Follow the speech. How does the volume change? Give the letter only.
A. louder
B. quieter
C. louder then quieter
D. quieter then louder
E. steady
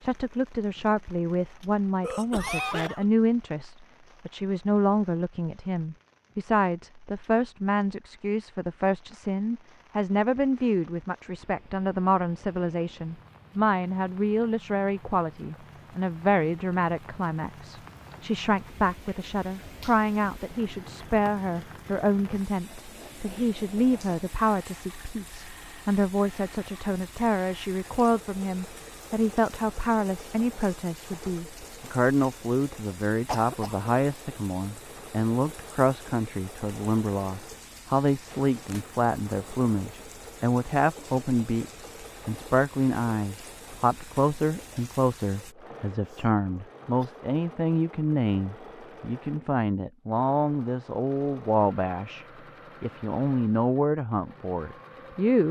E.